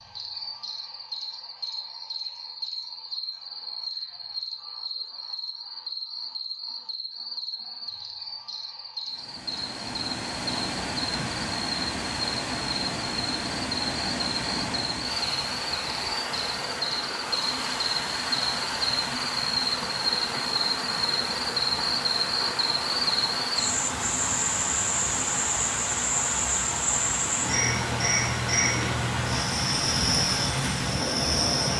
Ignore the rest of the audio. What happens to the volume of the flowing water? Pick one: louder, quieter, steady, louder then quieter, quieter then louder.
steady.